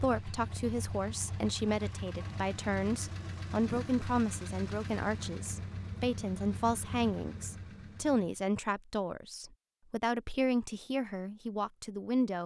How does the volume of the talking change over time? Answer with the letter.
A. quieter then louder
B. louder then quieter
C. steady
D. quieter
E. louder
C.